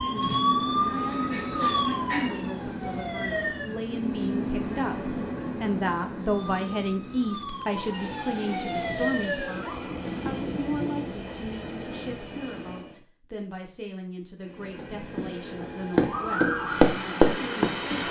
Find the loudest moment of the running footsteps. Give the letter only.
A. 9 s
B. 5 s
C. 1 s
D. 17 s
D.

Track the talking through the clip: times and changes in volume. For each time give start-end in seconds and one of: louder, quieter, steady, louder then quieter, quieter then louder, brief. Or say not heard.
0.0-18.0 louder then quieter.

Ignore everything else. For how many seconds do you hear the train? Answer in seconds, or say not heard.
17 s.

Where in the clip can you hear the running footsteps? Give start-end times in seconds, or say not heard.
14.8-17.7.